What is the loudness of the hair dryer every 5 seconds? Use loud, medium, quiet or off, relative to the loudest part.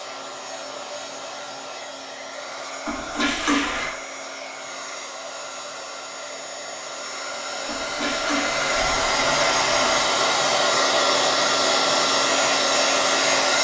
quiet, medium, loud.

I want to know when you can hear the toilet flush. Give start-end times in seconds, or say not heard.
2.9-3.9, 7.7-10.1.